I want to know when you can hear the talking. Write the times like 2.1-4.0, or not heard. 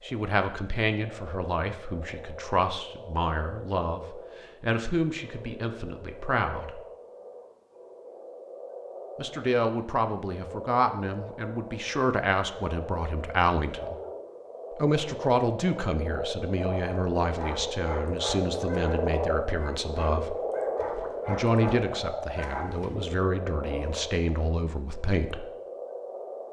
0.0-6.8, 9.2-13.9, 14.8-20.4, 21.2-25.4.